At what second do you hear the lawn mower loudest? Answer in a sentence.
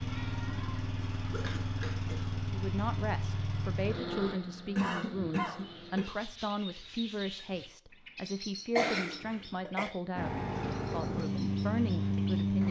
The volume of the lawn mower peaks at 12 seconds.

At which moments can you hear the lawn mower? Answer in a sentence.
The lawn mower can be heard from 0.0 to 6.0 s and from 10.2 to 12.6 s.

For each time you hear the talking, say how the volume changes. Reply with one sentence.
You can hear the talking from 2.5 to 12.6 s, at a steady volume.